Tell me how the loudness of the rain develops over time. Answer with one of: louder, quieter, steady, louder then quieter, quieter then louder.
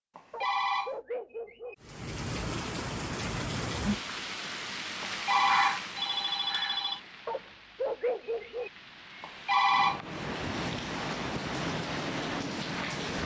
quieter then louder.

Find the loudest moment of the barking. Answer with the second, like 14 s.
8 s.